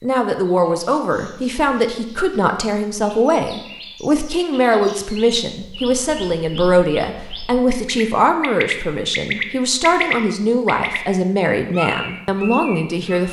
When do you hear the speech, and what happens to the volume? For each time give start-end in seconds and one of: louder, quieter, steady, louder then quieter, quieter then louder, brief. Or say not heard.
0.0-13.2 steady.